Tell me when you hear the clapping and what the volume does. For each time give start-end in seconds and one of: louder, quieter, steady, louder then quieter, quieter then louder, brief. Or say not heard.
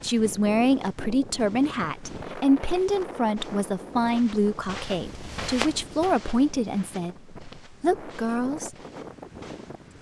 not heard.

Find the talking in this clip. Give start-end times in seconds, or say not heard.
0.0-8.7.